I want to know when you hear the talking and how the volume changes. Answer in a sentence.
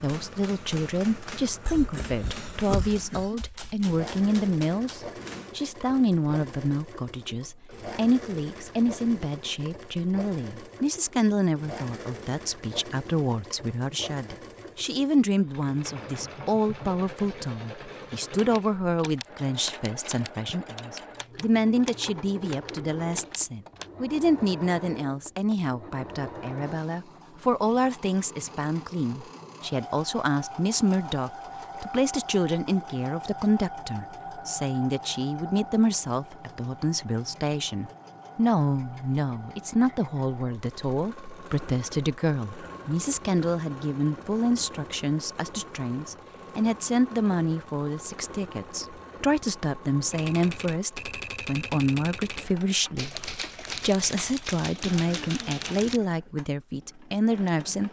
The talking can be heard from 0.0 to 57.8 s, at a steady volume.